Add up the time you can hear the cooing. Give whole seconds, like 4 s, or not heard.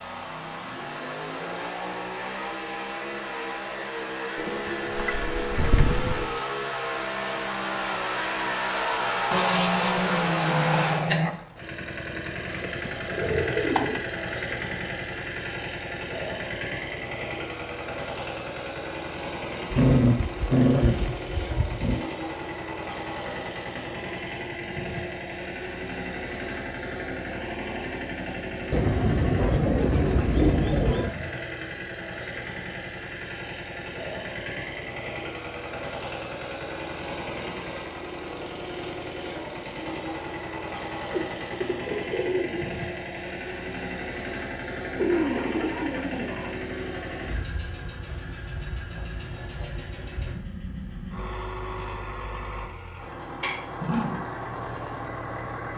9 s.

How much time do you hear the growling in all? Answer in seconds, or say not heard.
5 s.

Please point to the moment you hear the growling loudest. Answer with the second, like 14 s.
20 s.